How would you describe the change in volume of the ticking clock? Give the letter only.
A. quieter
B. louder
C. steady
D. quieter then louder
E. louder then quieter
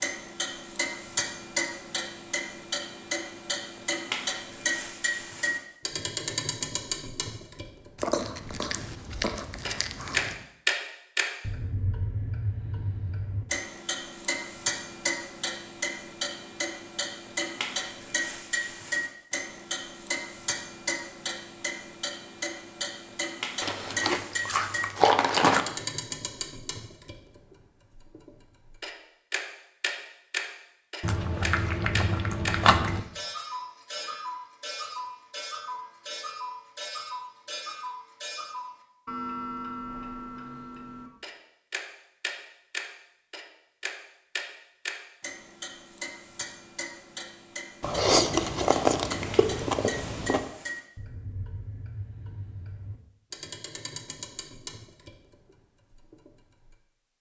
A.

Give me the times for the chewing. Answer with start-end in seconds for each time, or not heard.
8.0-10.3, 23.6-25.6, 31.0-33.0, 47.8-50.5.